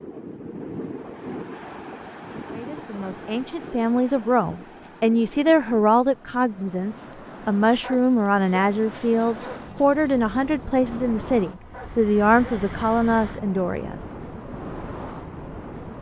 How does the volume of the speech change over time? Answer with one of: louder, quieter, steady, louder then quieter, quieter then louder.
steady.